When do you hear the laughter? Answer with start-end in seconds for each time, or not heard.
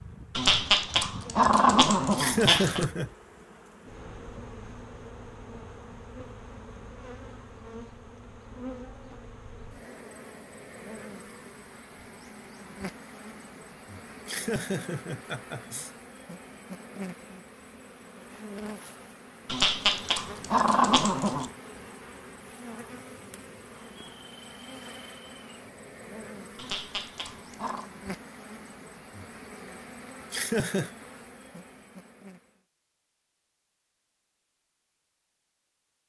2.1-3.1, 14.2-15.9, 30.3-30.9.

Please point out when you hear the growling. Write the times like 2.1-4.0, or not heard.
0.3-2.9, 19.4-21.5, 26.6-27.9.